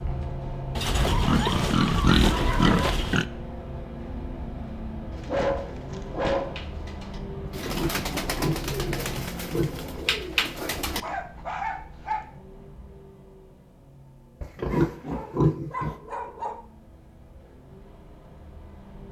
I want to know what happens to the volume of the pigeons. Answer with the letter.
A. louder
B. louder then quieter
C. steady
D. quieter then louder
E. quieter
A.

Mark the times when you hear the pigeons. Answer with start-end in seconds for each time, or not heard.
5.1-11.0.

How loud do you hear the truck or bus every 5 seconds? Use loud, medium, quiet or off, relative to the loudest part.
loud, loud, quiet, quiet.